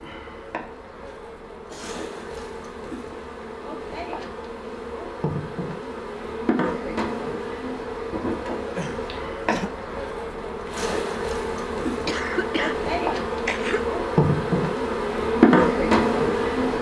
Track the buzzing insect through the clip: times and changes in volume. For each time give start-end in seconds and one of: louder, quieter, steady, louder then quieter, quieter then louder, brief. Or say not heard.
0.0-16.7 louder.